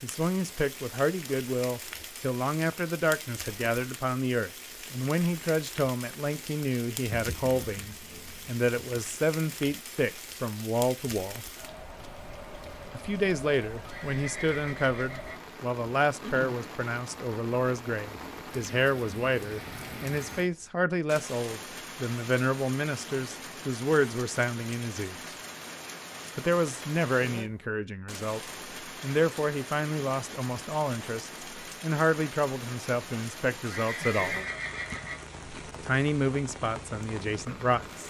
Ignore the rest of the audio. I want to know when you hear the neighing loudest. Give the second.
34 s.